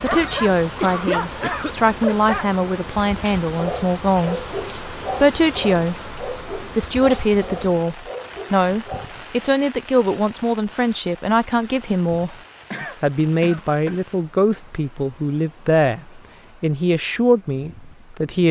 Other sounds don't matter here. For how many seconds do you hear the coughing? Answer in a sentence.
You can hear the coughing for 3 seconds altogether.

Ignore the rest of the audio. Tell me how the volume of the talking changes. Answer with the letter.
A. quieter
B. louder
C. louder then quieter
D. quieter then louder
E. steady
E.